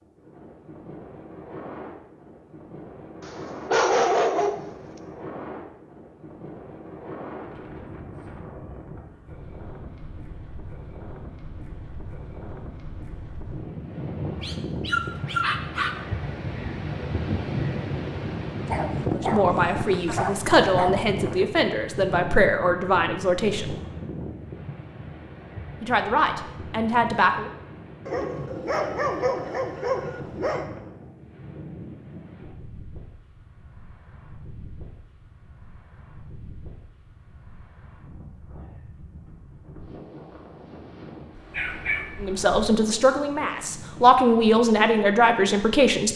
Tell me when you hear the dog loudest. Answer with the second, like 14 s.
4 s.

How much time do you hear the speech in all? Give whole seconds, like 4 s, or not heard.
10 s.